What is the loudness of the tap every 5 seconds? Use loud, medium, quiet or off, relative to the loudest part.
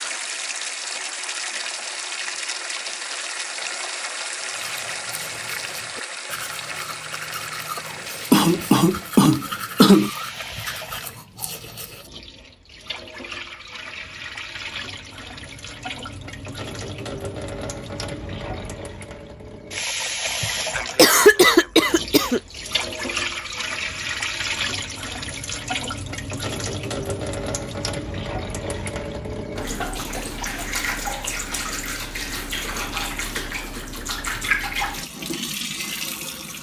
loud, medium, medium, medium, loud, loud, loud, loud.